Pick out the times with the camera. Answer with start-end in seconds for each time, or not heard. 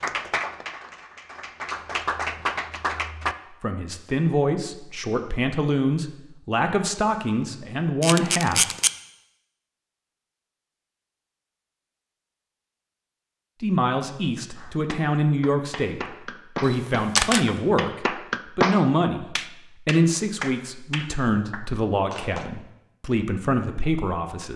8.0-8.9, 16.6-17.4.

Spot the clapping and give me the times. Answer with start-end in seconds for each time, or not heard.
0.0-3.4, 14.6-22.4.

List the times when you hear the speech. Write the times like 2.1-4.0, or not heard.
3.5-8.7, 13.6-24.5.